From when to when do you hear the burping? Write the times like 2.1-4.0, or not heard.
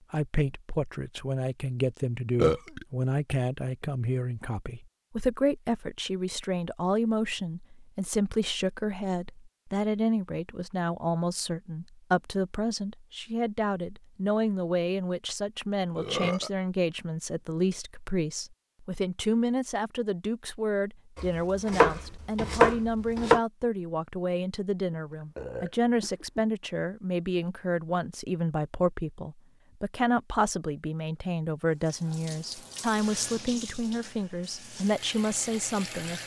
2.4-2.9, 15.6-16.5, 24.9-26.4.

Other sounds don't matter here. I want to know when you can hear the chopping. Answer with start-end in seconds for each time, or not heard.
21.1-23.4.